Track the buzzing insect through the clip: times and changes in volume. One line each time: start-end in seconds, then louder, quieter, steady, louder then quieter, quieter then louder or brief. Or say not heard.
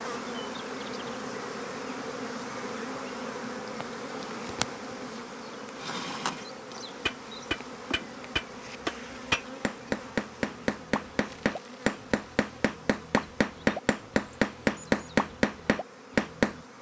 0.0-16.7 quieter.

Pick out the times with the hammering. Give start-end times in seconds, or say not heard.
7.0-16.6.